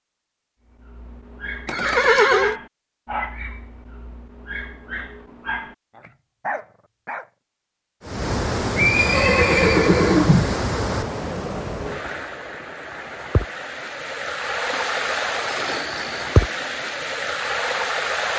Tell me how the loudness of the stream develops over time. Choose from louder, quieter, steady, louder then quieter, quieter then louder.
quieter then louder.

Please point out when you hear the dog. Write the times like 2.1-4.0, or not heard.
0.8-7.2.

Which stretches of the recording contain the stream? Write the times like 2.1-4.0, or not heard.
8.0-18.3.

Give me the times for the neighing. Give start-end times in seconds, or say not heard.
1.6-2.5, 8.8-10.6, 14.7-16.7.